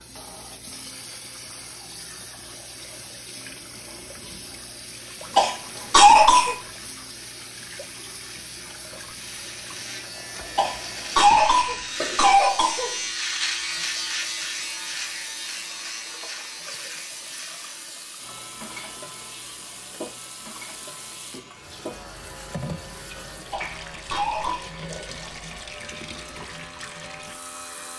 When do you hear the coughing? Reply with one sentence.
You can hear the coughing from 5.3 to 6.5 s, from 10.6 to 12.9 s and from 23.5 to 24.7 s.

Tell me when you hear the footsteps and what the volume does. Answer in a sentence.
The footsteps can't be heard in this clip.